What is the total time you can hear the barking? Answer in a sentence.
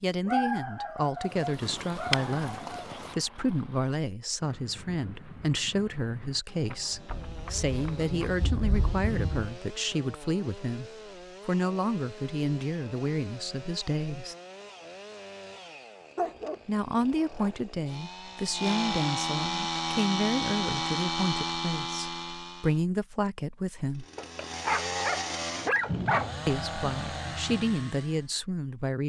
The barking can be heard for 6 seconds in total.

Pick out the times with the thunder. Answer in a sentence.
The thunder can be heard from 7.1 to 9.6 s and from 25.9 to 27.2 s.